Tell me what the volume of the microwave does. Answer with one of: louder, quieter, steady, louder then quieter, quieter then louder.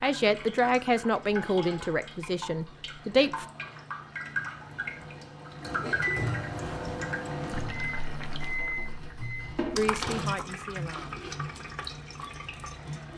louder then quieter.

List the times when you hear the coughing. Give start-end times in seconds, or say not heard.
5.8-6.5.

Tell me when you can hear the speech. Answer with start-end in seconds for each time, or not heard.
0.0-3.5, 9.8-11.2.